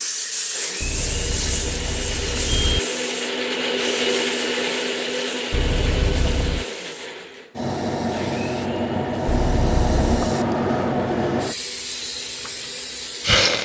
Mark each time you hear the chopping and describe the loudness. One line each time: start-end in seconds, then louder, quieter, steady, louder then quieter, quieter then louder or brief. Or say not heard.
not heard.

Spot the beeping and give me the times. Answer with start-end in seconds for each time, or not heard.
0.8-2.8, 5.5-6.7, 9.2-10.1.